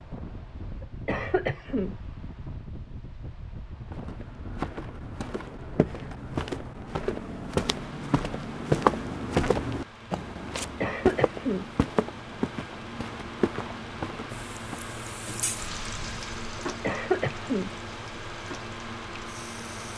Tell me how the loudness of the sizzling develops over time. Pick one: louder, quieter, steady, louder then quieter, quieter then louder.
quieter.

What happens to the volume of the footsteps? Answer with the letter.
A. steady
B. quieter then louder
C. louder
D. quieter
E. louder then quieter
E.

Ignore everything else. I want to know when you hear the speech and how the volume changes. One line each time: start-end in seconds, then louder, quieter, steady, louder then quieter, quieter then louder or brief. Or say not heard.
not heard.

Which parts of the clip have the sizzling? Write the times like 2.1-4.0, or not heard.
14.3-19.9.